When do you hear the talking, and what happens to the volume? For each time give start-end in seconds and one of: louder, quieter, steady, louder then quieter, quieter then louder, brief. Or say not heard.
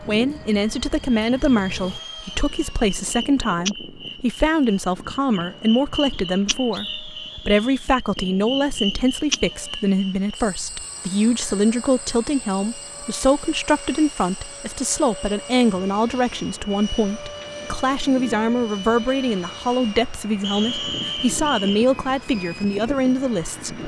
0.0-23.8 steady.